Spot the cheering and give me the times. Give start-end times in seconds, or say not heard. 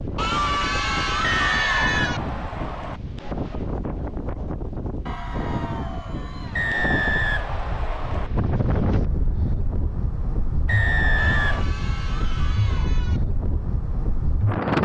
0.1-2.2, 5.0-6.8, 11.2-13.2.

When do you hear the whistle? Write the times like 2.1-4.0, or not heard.
1.2-3.0, 6.5-8.3, 10.7-11.7.